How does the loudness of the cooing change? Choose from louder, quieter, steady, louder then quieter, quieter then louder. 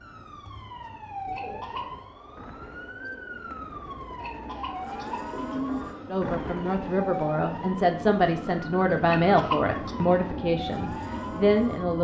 louder.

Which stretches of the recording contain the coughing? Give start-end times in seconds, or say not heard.
1.3-1.9, 4.2-5.7, 9.1-10.1.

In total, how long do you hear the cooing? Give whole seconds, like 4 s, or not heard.
6 s.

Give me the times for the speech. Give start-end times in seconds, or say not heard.
6.0-11.9.